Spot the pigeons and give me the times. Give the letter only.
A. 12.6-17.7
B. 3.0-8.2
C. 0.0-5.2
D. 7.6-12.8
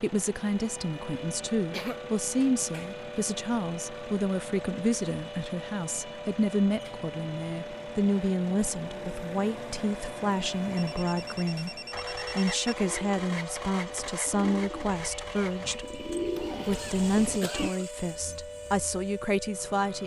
A.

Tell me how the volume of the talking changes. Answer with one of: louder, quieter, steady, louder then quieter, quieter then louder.
steady.